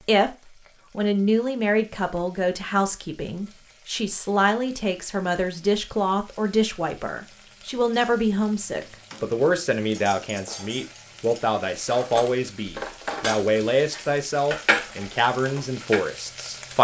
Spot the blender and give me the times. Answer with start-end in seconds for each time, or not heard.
not heard.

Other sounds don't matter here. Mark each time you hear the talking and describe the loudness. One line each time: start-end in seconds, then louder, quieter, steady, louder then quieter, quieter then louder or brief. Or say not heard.
0.1-16.7 steady.